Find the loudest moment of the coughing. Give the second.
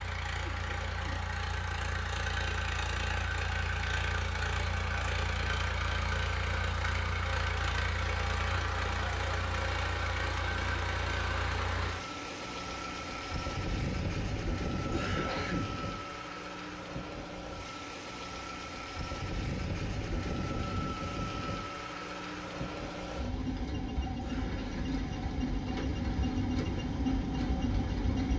15 s.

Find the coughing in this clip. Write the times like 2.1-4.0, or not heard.
0.4-1.2, 14.9-15.7, 24.2-24.9.